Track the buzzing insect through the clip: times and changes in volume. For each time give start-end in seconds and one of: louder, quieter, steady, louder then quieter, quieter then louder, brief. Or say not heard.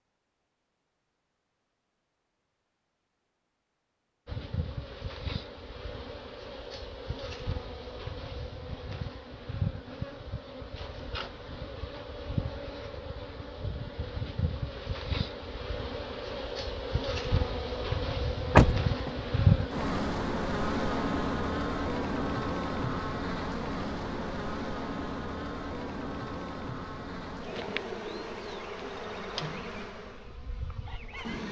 4.2-31.4 louder then quieter.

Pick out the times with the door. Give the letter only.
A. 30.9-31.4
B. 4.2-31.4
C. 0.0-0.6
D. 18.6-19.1
D.